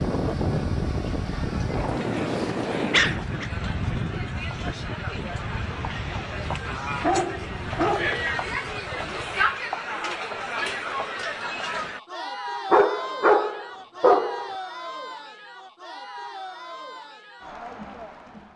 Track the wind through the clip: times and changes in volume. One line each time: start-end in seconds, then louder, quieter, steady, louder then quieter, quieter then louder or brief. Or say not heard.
0.0-9.6 quieter.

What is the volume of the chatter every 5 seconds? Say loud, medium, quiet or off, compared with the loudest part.
medium, loud, loud, medium.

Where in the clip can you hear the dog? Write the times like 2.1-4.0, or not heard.
1.8-3.5, 7.0-8.2, 12.7-14.4.